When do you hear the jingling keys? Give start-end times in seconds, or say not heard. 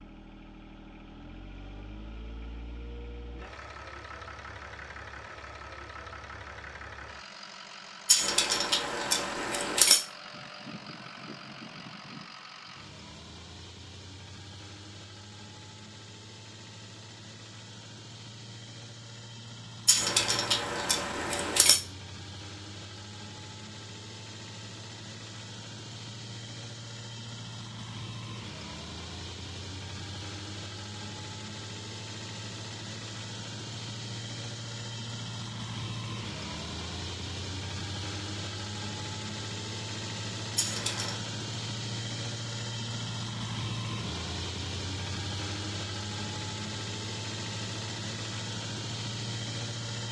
8.1-10.0, 19.9-21.8, 40.5-41.2.